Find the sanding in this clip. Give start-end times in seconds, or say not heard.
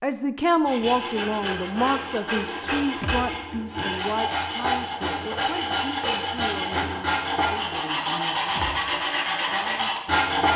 0.7-10.5.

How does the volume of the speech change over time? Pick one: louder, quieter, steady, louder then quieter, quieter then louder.
quieter.